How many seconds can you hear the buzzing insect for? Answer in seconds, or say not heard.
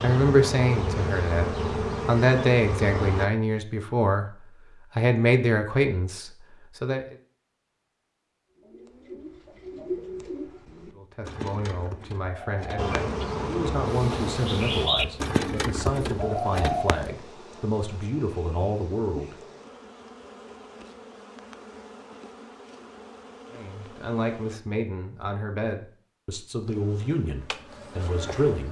17 s.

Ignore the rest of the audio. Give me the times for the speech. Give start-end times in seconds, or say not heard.
0.0-7.2, 10.9-19.4, 23.5-28.6.